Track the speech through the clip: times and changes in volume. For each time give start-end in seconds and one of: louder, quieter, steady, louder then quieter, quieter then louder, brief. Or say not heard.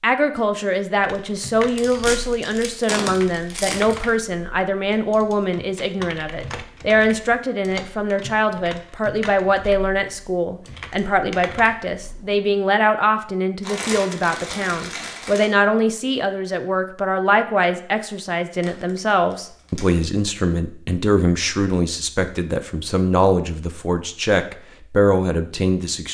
0.0-26.1 steady.